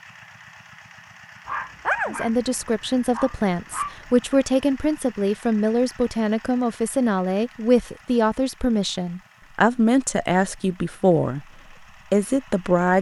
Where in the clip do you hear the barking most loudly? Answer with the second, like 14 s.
2 s.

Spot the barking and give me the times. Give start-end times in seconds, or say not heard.
1.4-4.0.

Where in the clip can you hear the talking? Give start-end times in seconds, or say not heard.
2.0-11.4, 12.1-12.9.